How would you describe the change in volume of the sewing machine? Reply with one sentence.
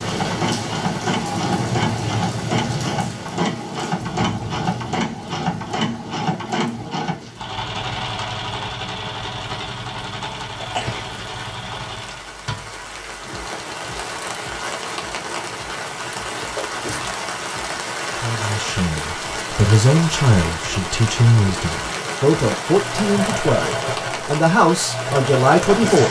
The volume of the sewing machine goes down, then up.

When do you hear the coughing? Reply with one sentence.
The coughing can be heard from 10.6 to 11.2 s.